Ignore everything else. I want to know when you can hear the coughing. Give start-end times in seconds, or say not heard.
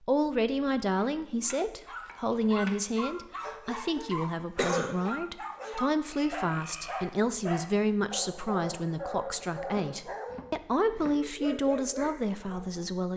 4.0-5.0.